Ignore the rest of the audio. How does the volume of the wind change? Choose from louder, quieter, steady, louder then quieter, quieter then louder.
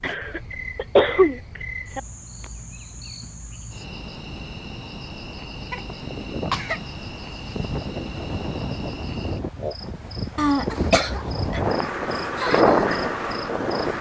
louder.